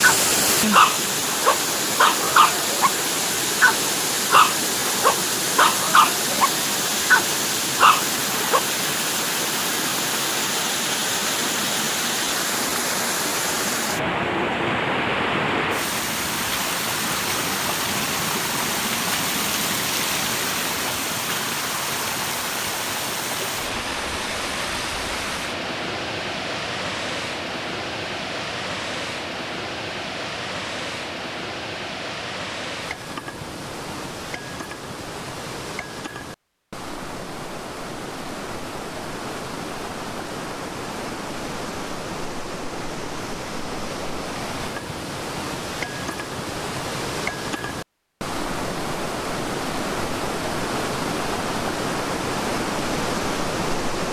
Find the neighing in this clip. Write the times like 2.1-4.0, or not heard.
not heard.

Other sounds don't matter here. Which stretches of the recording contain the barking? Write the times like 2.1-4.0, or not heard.
0.0-8.6.